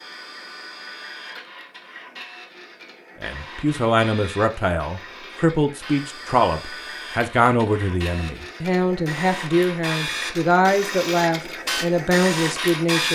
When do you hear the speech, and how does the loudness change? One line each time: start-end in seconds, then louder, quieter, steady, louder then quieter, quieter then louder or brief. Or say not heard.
3.2-13.1 steady.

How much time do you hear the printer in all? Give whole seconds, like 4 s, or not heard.
13 s.